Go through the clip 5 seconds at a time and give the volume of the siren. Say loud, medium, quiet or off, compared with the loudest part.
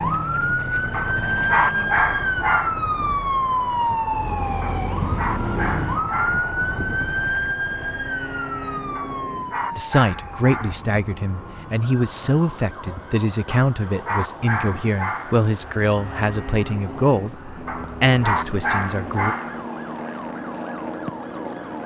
loud, loud, quiet, quiet, quiet.